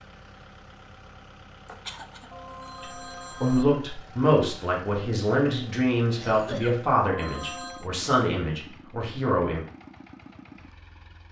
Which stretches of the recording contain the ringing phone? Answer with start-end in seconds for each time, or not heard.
2.3-3.6, 7.0-7.9.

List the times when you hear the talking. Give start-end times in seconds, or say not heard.
2.8-9.7.